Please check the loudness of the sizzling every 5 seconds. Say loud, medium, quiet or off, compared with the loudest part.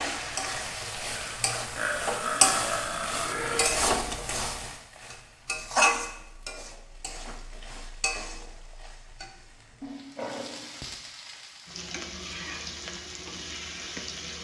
loud, loud, medium.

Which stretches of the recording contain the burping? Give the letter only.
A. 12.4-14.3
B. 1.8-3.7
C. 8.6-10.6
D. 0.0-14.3
B.